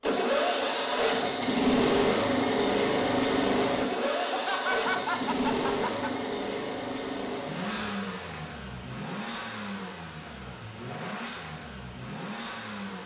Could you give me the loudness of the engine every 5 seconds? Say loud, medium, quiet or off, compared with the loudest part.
loud, medium, quiet.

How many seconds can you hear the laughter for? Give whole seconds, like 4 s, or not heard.
2 s.